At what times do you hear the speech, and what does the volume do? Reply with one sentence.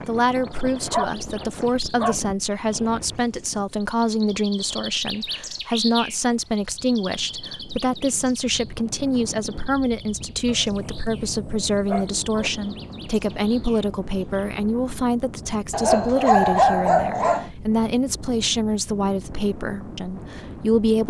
You can hear the speech from 0.1 to 21.0 s, at a steady volume.